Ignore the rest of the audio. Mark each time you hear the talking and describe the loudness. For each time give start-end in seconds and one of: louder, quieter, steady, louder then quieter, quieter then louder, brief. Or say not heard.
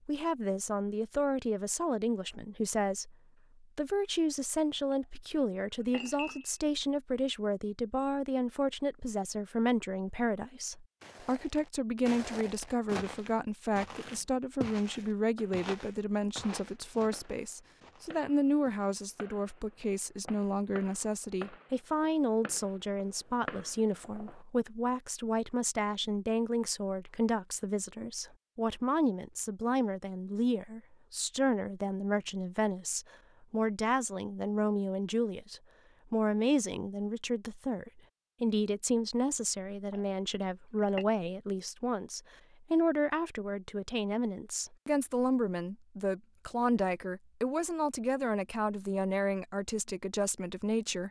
0.1-51.0 steady.